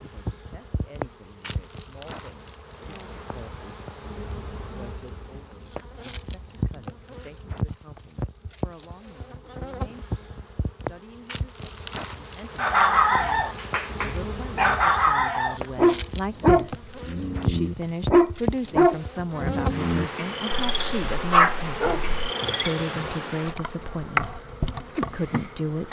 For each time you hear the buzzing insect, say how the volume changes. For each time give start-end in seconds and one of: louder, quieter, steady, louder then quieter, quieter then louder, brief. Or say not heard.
0.0-25.8 louder.